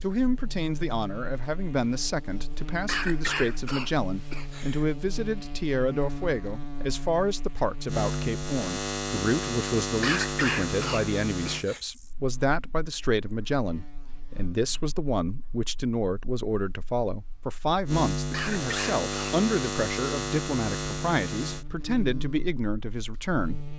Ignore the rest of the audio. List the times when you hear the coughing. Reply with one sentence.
You can hear the coughing from 2.9 to 4.8 s, from 10.0 to 11.8 s and from 18.3 to 19.4 s.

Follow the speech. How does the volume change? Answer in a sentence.
The volume of the speech stays about the same.